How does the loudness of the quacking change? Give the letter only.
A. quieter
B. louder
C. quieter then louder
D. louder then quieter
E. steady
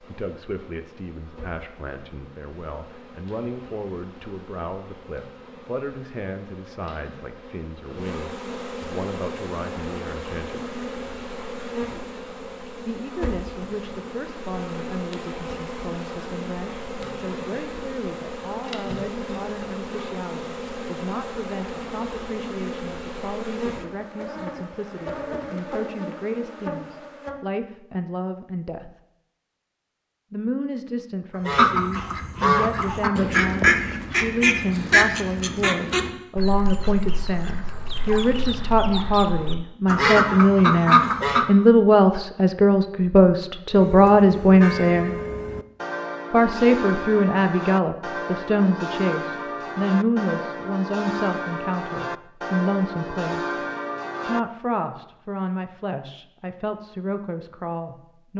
C.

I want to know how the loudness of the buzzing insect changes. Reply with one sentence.
The loudness of the buzzing insect goes up.